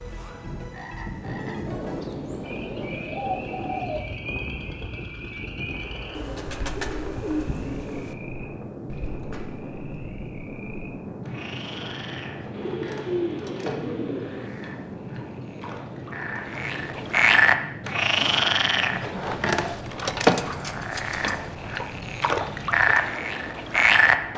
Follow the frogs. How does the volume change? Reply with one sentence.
The loudness of the frogs goes up.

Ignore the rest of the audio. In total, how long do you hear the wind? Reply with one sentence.
You can hear the wind for 24 seconds altogether.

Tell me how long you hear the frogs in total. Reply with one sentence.
The frogs can be heard for 24 seconds in total.